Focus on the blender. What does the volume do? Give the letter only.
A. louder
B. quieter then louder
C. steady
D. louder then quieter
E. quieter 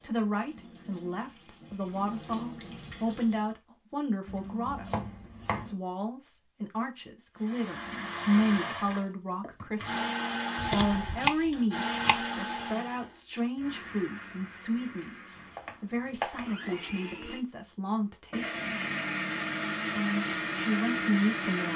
B.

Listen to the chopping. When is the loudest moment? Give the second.
11 s.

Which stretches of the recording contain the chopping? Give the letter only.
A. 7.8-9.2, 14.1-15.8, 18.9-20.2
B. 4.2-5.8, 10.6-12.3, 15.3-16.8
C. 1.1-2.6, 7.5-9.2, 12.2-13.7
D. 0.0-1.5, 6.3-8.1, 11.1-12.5
B.